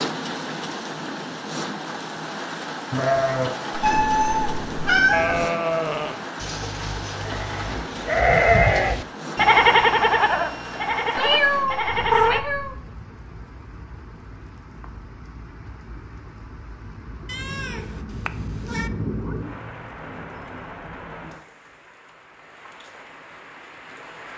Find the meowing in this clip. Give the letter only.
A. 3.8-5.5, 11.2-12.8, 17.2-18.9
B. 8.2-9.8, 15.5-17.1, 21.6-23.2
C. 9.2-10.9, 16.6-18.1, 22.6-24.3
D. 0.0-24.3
A.